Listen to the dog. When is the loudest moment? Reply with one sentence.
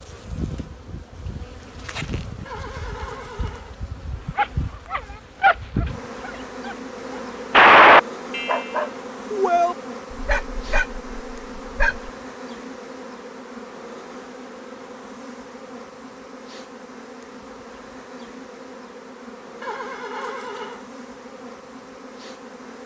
The loudest moment of the dog is at 8 seconds.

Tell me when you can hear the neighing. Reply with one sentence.
You can hear the neighing from 2.5 to 3.8 s and from 19.6 to 20.9 s.